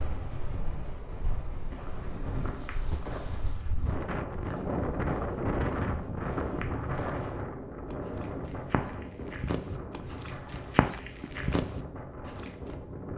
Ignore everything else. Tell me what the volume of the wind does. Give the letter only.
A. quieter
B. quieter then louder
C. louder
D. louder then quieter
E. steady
D.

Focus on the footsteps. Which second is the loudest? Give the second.
11 s.